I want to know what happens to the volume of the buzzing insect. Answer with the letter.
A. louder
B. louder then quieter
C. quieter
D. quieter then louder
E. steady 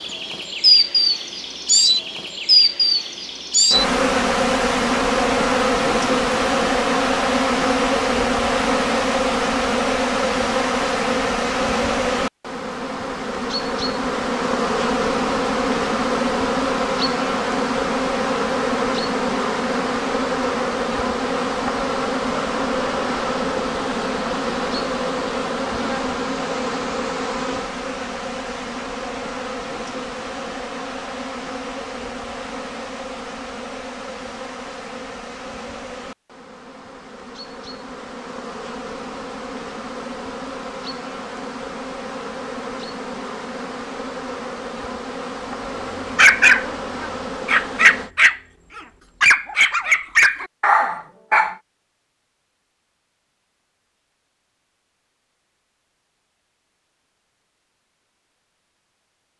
C.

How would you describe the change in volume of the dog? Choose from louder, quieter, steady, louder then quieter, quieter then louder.
steady.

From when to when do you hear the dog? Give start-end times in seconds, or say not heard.
45.8-51.5.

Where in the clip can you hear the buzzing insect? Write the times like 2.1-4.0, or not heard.
0.0-48.1.